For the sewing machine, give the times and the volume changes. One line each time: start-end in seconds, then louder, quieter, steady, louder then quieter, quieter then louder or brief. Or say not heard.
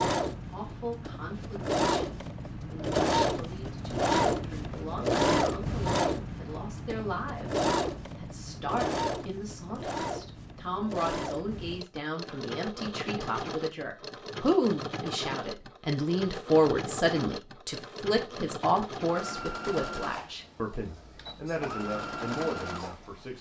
0.0-23.3 quieter.